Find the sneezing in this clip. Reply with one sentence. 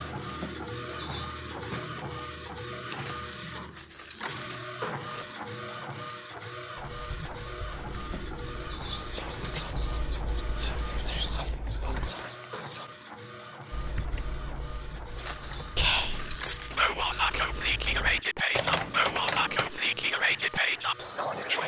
You can't hear the sneezing here.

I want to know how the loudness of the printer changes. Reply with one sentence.
The volume of the printer goes down.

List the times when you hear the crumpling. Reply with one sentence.
The crumpling can be heard from 3.0 to 5.3 s and from 15.2 to 17.9 s.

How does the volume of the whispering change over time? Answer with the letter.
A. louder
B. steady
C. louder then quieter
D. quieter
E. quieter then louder
A.